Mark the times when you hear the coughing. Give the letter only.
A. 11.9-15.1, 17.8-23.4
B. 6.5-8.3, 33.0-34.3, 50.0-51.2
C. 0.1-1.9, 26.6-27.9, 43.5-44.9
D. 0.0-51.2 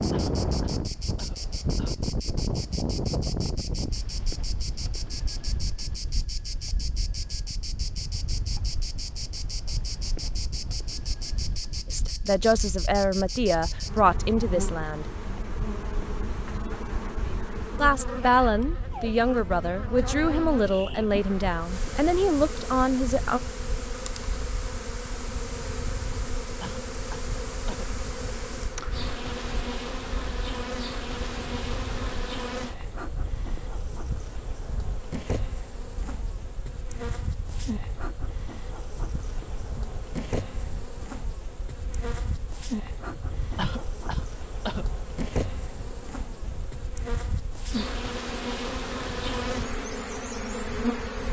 C.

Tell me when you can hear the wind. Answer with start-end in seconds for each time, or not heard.
0.0-51.2.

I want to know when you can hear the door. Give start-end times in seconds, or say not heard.
not heard.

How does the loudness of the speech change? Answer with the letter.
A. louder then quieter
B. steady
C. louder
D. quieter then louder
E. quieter
B.